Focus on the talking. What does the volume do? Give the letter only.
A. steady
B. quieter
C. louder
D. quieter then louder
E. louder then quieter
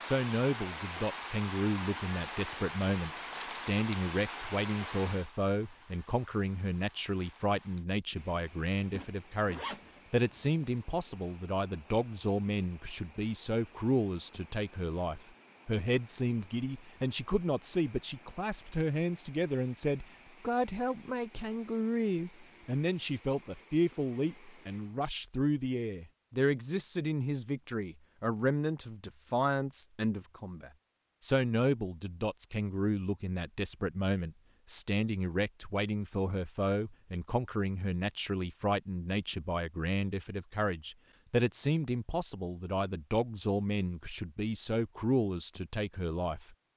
A.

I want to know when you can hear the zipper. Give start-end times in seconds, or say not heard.
8.9-10.6.